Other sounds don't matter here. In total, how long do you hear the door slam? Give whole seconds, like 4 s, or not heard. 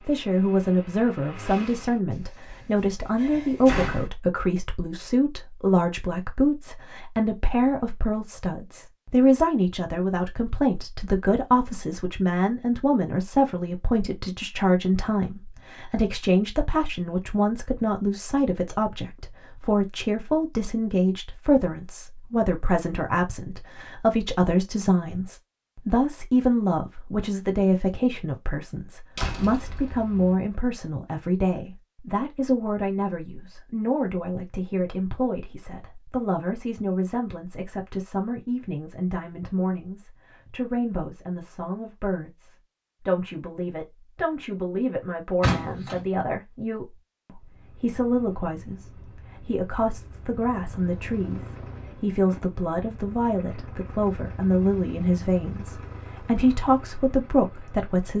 4 s.